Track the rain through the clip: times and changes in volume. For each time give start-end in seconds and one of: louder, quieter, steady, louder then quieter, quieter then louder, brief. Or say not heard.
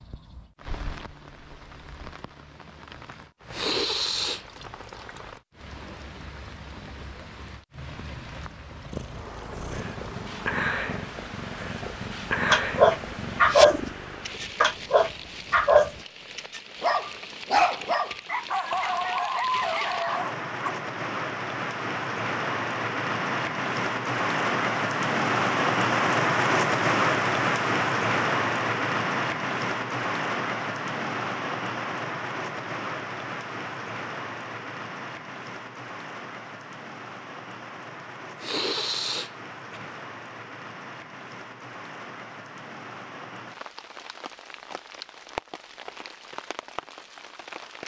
0.0-47.8 louder then quieter.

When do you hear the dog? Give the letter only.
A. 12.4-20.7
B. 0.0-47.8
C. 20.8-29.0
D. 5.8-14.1
A.